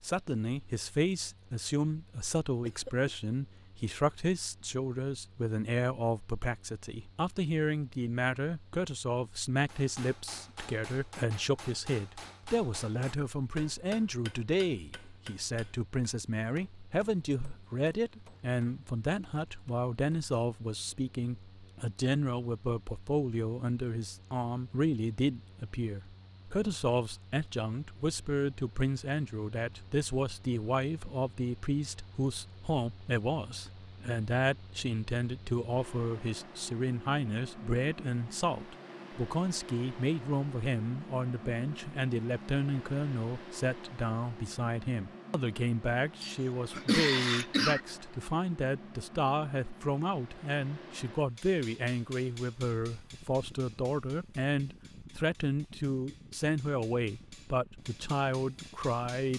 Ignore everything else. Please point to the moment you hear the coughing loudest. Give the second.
47 s.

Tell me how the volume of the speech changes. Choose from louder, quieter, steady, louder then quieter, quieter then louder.
steady.